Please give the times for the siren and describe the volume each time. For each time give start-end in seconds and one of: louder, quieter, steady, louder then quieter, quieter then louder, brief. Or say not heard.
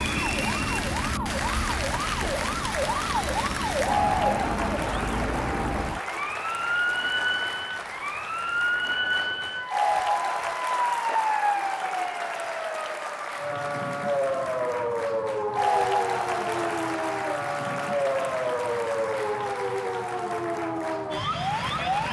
0.0-22.0 steady.